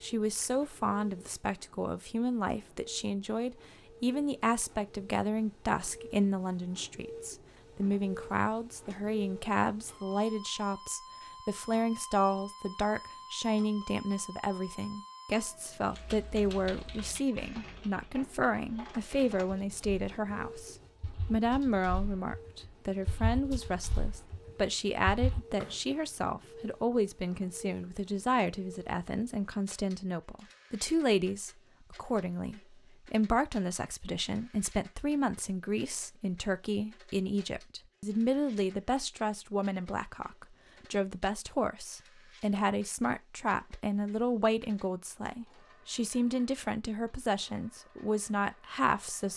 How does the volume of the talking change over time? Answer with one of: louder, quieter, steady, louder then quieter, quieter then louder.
steady.